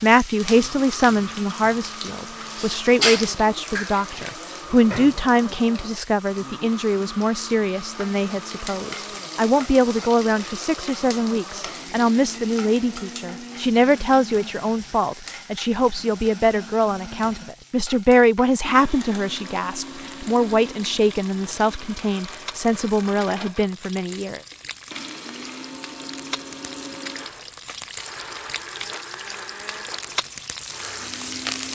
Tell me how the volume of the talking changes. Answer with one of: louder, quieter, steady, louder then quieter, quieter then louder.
steady.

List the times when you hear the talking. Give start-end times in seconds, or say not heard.
0.0-24.4.